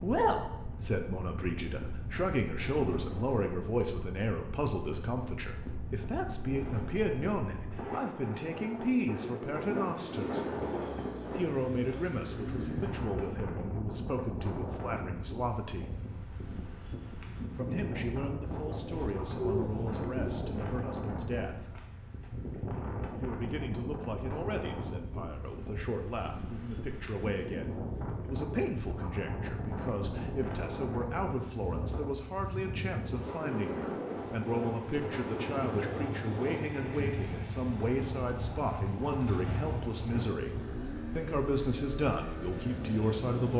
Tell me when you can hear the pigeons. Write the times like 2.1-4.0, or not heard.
18.5-20.5.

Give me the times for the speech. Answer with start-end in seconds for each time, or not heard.
0.0-10.4, 11.3-15.9, 17.6-21.8, 23.2-40.5, 41.1-43.5.